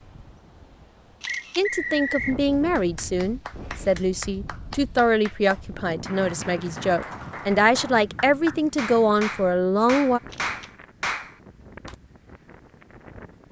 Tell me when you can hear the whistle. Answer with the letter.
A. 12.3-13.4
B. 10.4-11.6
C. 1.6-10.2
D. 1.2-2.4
D.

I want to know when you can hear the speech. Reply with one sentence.
You can hear the speech from 1.6 to 10.2 s.